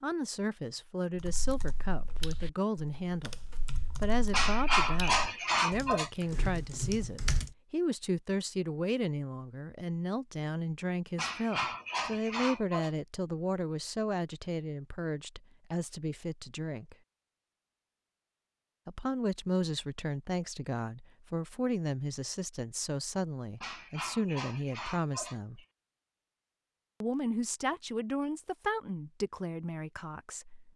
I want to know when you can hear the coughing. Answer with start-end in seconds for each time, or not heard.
4.3-6.1, 11.2-12.9, 23.6-25.6.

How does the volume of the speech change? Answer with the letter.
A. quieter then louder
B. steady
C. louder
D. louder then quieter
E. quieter
B.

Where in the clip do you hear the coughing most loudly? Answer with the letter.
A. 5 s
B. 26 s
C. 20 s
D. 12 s
A.